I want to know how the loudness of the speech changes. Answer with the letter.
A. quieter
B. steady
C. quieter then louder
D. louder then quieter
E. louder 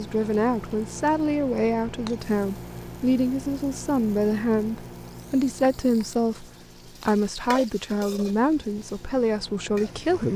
B.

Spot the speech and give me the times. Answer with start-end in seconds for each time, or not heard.
0.0-6.5, 7.0-10.3.